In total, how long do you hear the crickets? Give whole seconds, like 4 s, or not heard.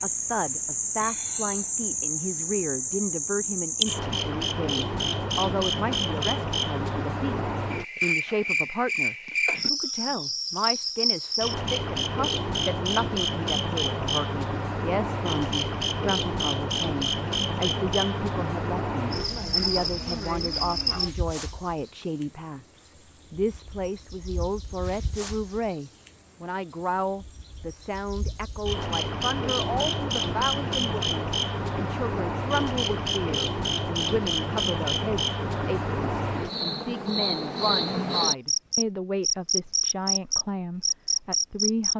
42 s.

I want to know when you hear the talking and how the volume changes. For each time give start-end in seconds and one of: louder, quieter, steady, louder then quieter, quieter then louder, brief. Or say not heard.
0.0-41.9 steady.